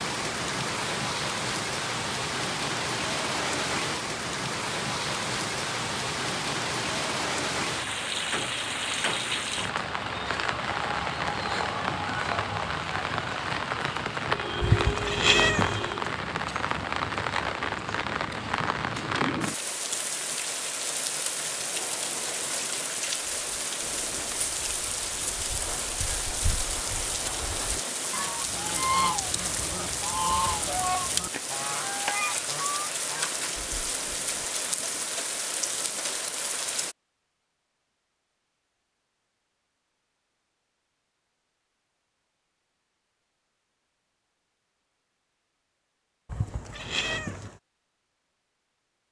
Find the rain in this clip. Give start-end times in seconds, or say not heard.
0.0-37.0.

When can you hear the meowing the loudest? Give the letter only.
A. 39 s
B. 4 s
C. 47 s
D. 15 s
D.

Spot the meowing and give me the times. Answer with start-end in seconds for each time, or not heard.
14.6-15.9, 46.2-47.6.